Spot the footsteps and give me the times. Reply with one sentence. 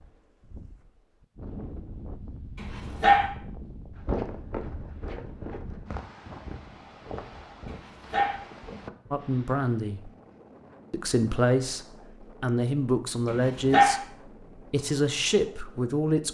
The footsteps can be heard from 4.0 to 9.3 s.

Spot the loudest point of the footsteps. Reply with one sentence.
The loudest moment of the footsteps is at 4 seconds.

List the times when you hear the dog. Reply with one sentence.
You can hear the dog from 2.5 to 3.3 s, from 7.7 to 8.4 s and from 13.2 to 14.0 s.